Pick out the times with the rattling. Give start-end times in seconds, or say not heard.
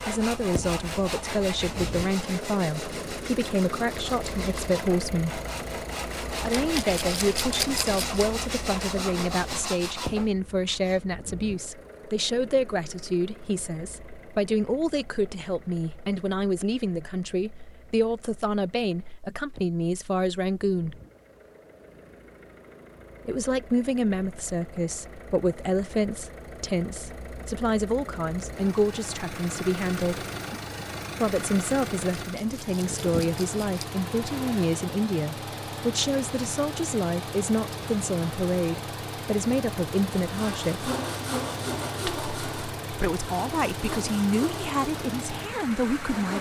6.5-8.2, 32.1-33.9.